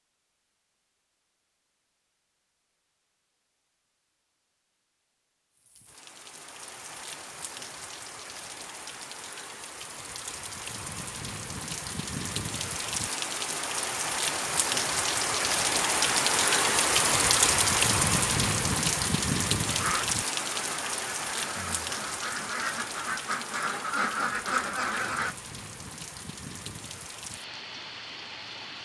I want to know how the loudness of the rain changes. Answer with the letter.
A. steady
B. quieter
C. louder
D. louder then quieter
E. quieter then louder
D.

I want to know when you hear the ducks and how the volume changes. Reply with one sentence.
The ducks can be heard from 19.6 to 25.4 s, getting louder.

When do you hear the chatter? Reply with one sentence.
You can't hear the chatter here.